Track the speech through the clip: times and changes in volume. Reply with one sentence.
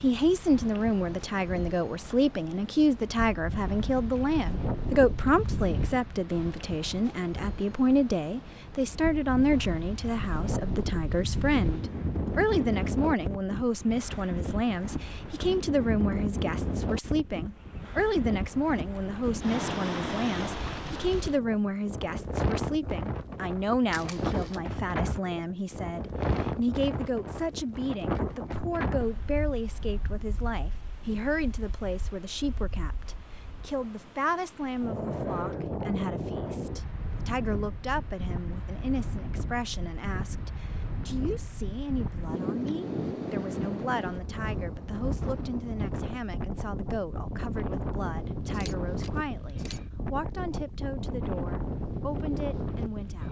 The speech can be heard from 0.0 to 53.2 s, getting quieter.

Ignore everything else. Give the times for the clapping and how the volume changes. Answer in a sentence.
You can't hear the clapping here.